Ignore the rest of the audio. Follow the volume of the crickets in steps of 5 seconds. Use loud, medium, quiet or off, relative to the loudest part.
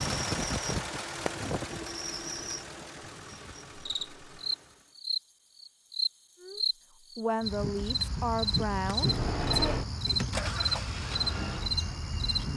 medium, loud, loud.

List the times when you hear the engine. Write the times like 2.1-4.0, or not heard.
0.0-5.0, 8.9-12.5.